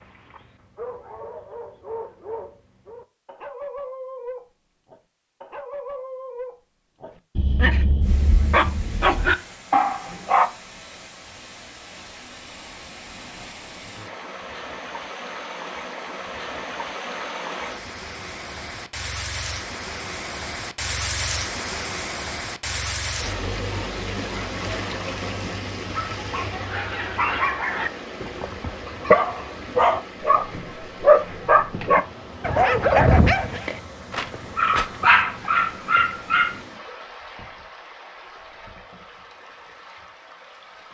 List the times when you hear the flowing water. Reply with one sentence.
The flowing water can be heard from 8.0 to 40.8 s.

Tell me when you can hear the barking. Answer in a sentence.
The barking can be heard from 0.0 to 10.5 s and from 25.9 to 36.6 s.